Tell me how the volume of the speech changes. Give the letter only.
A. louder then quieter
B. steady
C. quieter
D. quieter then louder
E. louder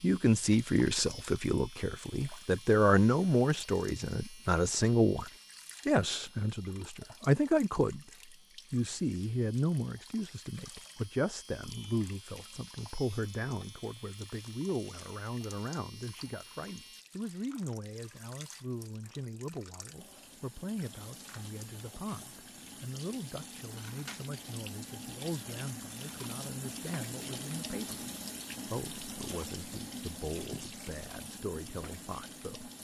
C.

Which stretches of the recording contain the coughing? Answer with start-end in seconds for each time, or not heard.
not heard.